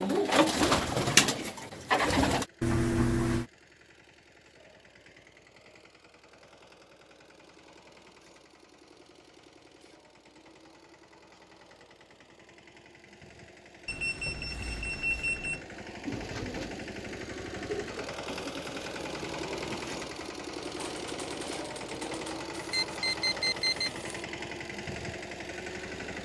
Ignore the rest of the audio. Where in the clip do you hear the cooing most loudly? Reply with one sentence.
The loudest moment of the cooing is at 1 second.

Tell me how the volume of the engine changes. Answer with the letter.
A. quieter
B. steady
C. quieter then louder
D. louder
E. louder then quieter
D.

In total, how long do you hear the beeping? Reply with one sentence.
The beeping can be heard for 4 seconds in total.